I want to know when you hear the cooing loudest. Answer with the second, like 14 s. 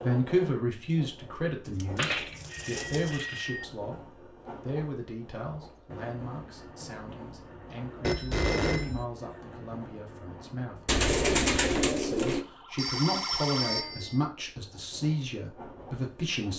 11 s.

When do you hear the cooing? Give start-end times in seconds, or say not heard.
1.6-3.3, 10.8-12.4.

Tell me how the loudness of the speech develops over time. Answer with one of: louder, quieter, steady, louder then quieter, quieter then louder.
quieter then louder.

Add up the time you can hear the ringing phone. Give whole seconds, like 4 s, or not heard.
4 s.